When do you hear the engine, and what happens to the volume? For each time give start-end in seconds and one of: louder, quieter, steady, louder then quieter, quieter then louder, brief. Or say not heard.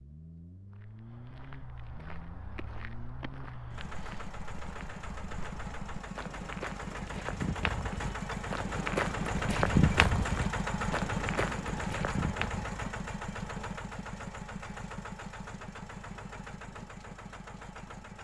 0.0-18.2 louder then quieter.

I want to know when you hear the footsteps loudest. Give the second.
10 s.